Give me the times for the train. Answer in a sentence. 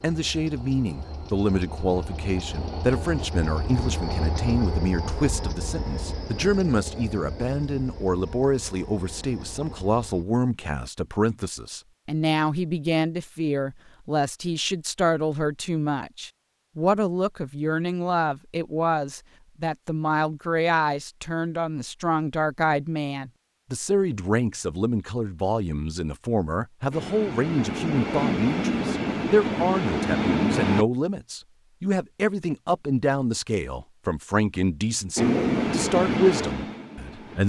You can hear the train from 0.0 to 10.2 s, from 26.9 to 30.9 s and from 35.1 to 37.4 s.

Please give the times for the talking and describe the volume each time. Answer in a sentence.
The talking can be heard from 0.0 to 37.4 s, at a steady volume.